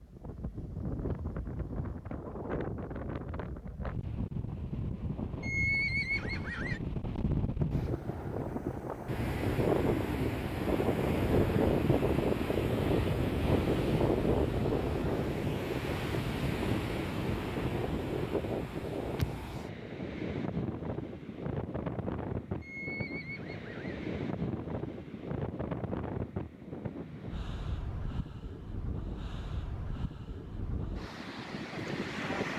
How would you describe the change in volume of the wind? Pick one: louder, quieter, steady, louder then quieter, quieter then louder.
louder then quieter.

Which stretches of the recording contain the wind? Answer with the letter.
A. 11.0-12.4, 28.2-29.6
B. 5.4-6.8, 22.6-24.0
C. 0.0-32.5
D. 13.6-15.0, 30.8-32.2
C.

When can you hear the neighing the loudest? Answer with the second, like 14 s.
6 s.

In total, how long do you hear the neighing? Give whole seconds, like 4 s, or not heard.
3 s.